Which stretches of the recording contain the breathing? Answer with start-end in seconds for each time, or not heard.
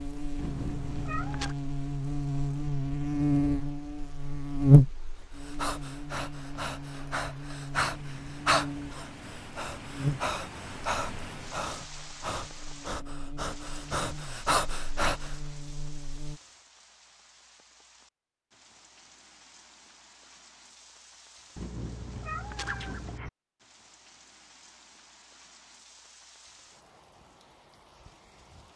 5.3-15.3.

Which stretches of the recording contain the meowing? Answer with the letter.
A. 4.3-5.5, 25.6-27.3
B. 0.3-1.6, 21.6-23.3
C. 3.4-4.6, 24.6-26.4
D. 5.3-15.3
B.